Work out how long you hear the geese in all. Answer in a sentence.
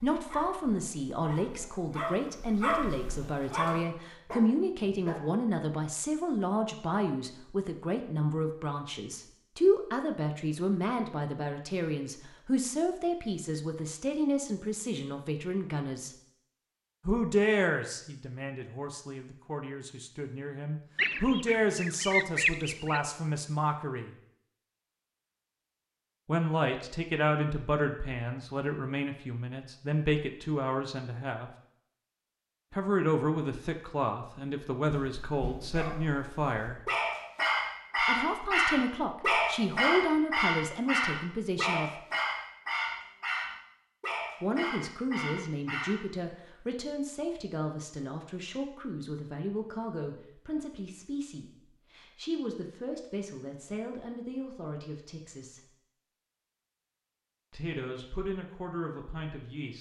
The geese can be heard for 2 seconds in total.